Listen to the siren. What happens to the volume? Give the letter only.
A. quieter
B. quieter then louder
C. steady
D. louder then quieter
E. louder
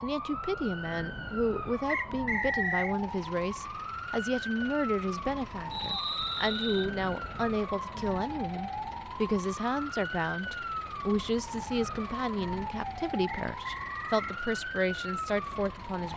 C.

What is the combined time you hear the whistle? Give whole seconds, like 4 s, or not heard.
3 s.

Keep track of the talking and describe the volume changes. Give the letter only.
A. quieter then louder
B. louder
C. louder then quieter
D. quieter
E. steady
E.